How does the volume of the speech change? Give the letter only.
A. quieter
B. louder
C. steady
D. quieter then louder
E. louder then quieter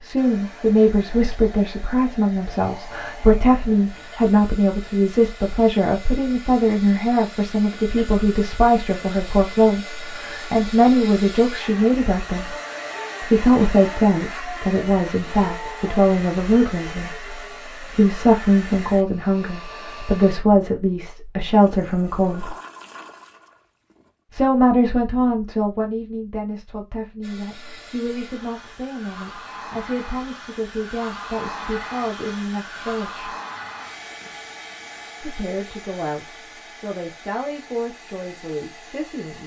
A.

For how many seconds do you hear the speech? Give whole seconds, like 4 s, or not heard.
35 s.